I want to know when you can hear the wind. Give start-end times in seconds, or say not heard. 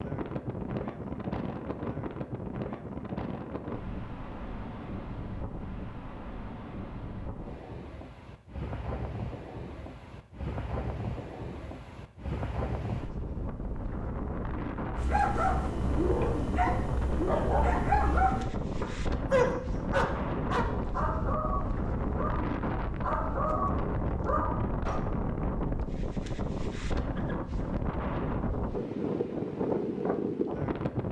0.0-31.0.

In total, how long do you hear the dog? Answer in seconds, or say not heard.
10 s.